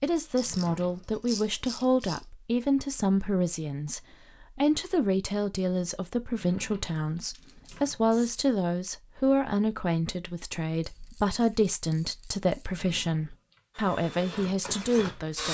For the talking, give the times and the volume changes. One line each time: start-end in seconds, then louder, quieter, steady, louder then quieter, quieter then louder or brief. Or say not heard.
0.0-15.4 steady.